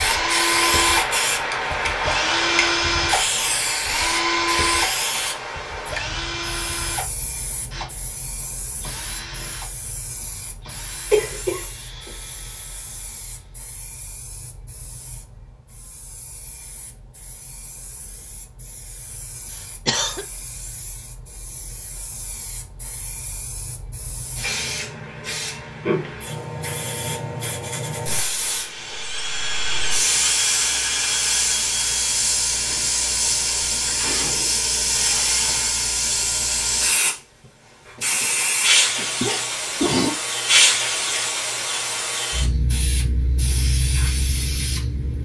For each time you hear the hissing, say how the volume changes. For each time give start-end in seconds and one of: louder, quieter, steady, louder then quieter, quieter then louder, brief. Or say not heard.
0.0-45.2 quieter then louder.